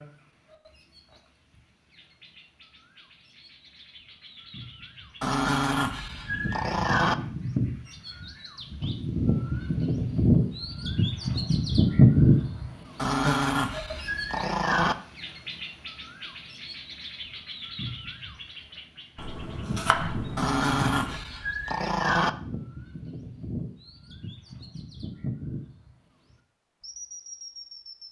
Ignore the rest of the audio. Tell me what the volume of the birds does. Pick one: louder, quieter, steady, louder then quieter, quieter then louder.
louder then quieter.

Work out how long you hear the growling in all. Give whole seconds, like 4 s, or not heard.
6 s.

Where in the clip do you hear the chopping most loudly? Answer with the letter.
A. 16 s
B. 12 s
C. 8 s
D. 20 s
D.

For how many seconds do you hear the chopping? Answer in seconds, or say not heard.
2 s.